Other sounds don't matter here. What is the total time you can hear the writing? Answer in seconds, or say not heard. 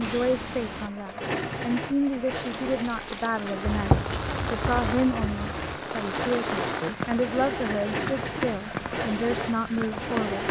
2 s.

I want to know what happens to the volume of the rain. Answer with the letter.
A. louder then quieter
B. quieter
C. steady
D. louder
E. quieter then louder
D.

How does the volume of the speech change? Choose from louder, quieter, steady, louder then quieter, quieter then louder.
steady.